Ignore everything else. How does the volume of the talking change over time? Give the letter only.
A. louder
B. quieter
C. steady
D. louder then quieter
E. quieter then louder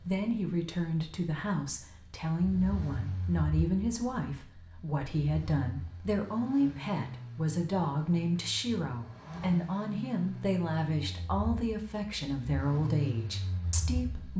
C.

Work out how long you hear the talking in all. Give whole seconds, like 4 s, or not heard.
14 s.